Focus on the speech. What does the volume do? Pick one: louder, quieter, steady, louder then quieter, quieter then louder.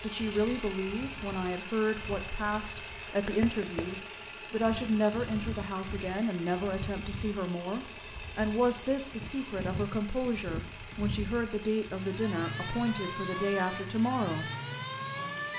steady.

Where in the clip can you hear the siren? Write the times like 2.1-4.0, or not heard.
0.1-15.5.